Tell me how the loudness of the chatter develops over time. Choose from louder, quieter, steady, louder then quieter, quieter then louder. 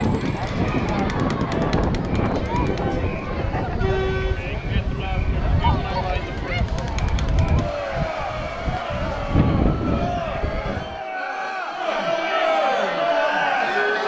louder.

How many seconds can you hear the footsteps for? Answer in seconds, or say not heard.
not heard.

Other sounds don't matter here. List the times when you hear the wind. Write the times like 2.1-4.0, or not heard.
0.0-11.0.